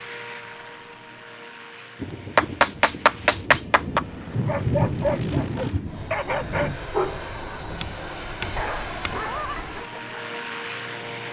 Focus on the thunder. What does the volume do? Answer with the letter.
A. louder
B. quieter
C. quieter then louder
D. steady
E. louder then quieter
E.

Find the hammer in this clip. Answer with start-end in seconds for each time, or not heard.
2.4-4.0, 7.8-9.3.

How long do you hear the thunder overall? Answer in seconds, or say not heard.
5 s.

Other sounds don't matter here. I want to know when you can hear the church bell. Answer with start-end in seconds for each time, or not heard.
not heard.